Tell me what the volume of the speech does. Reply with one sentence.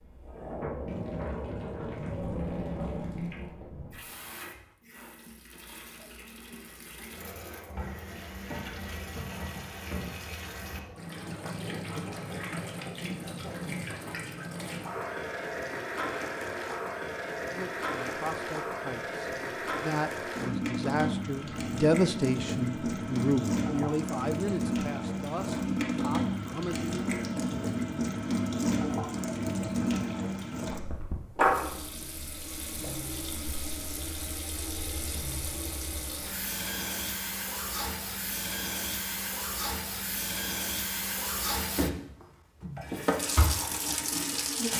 The volume of the speech goes up, then down.